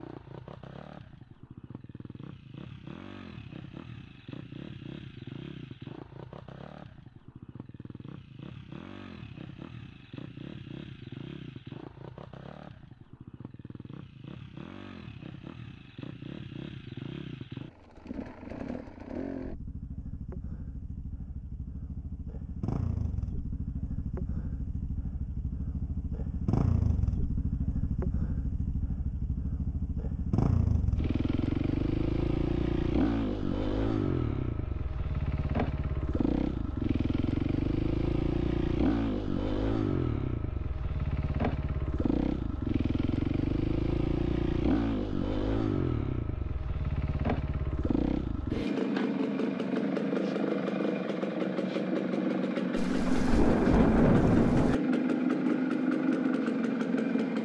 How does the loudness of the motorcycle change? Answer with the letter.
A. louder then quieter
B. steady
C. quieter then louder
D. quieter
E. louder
E.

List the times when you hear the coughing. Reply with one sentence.
You can't hear the coughing here.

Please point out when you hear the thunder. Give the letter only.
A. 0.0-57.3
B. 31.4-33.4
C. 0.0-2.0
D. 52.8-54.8
D.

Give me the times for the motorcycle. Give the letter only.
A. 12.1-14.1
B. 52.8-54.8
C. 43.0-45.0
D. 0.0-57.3
D.